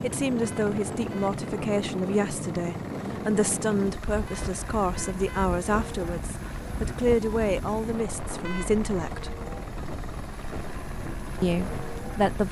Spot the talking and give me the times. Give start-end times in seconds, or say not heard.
0.0-9.3, 11.4-12.4.